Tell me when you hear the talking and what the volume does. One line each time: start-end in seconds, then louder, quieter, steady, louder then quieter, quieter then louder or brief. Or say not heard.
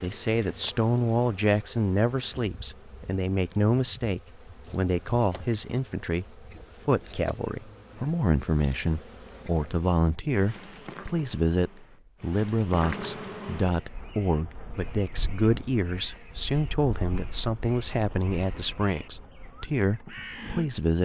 0.0-21.0 steady.